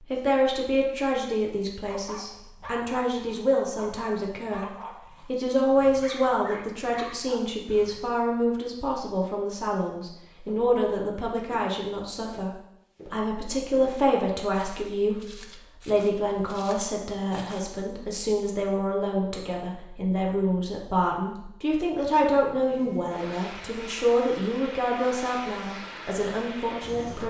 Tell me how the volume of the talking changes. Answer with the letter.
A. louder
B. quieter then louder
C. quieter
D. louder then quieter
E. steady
E.